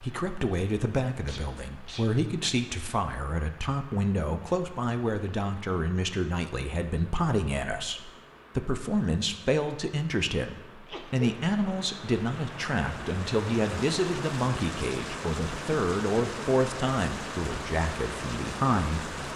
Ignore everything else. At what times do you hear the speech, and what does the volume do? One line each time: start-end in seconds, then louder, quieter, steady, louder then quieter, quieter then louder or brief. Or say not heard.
0.0-19.2 steady.